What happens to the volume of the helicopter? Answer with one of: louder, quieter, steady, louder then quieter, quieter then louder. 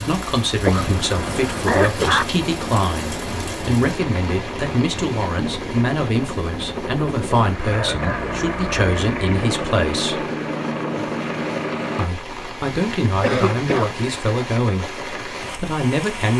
louder.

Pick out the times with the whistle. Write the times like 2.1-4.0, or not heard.
not heard.